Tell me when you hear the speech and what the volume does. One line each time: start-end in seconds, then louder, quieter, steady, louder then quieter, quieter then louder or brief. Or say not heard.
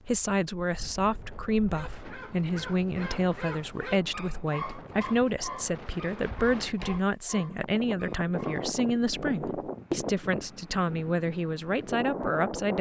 0.1-12.7 steady.